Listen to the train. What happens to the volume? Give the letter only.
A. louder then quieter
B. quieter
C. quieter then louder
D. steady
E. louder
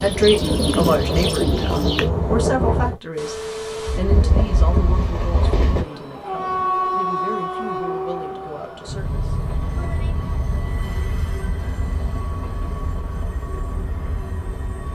B.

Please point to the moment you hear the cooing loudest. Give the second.
1 s.